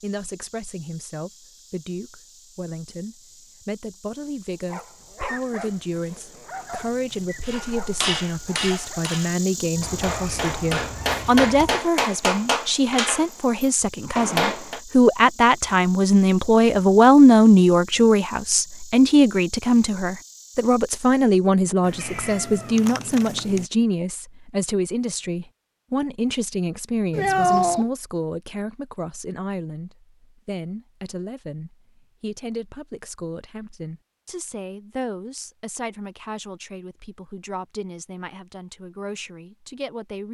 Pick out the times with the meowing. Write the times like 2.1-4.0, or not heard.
9.8-11.8, 21.9-23.6, 27.1-27.9.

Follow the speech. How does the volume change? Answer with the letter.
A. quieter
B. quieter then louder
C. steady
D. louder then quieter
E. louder
D.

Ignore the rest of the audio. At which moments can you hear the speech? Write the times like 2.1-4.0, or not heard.
0.0-40.2.